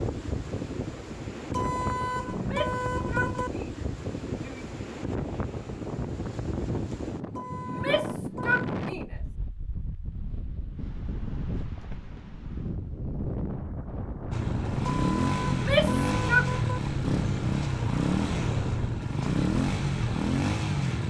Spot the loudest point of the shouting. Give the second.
16 s.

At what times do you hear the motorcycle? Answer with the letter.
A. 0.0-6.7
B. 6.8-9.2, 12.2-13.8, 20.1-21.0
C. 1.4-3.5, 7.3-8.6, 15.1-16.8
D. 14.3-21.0
D.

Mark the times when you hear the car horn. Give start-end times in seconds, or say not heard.
1.4-3.5, 7.3-8.6, 15.1-16.8.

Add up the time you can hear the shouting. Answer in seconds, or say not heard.
5 s.